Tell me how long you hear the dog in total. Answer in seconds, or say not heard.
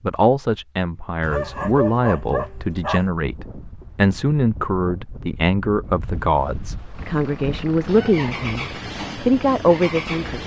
2 s.